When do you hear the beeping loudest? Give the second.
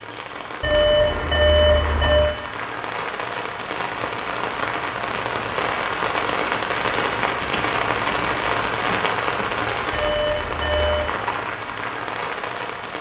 2 s.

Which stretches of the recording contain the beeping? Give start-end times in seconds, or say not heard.
0.6-2.3, 9.9-11.1.